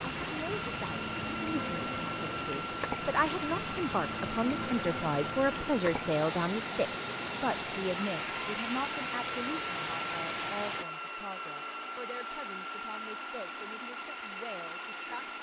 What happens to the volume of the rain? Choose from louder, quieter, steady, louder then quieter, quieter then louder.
steady.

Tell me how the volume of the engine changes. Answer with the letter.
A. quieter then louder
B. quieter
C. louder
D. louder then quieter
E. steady
E.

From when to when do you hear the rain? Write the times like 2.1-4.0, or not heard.
0.0-10.8.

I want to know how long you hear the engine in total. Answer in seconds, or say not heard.
15 s.